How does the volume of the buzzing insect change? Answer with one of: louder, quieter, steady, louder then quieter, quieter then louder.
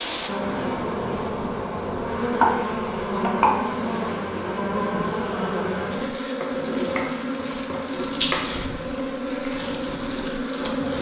steady.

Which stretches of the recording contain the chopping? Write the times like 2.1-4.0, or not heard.
2.4-3.8, 6.4-8.4.